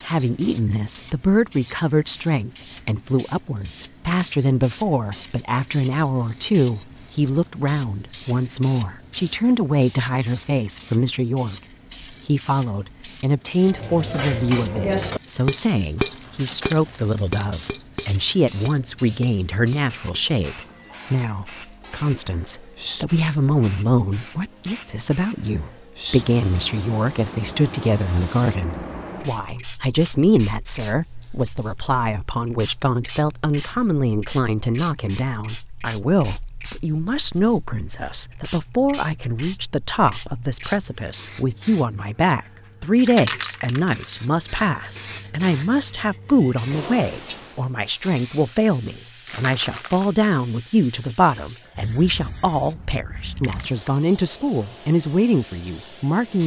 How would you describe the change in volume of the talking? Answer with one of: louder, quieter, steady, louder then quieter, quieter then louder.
steady.